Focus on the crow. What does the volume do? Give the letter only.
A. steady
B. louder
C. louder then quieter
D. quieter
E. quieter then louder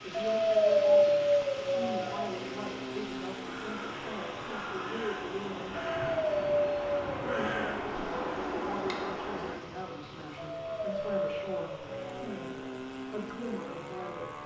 B.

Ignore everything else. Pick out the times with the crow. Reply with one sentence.
You can hear the crow from 3.4 to 9.6 s.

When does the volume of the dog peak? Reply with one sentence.
The loudest moment of the dog is at 1 second.